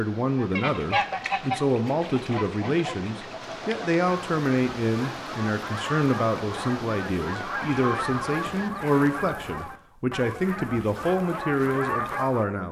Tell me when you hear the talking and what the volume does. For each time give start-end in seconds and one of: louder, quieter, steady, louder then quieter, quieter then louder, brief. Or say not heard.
0.0-12.6 steady.